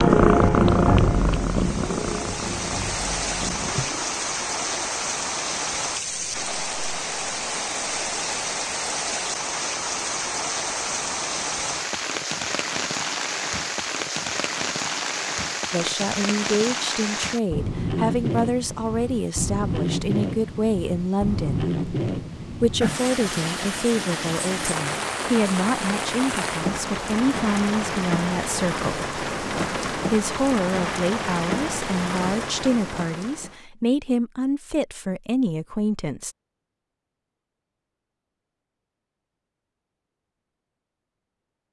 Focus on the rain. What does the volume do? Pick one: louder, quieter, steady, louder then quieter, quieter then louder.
steady.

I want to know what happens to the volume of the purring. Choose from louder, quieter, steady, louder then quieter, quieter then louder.
quieter.